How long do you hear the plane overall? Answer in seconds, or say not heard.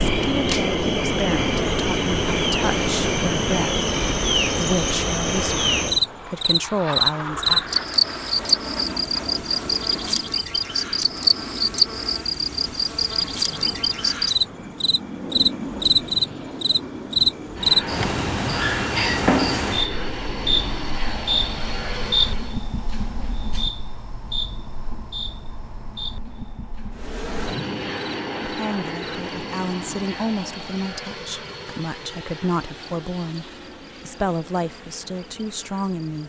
32 s.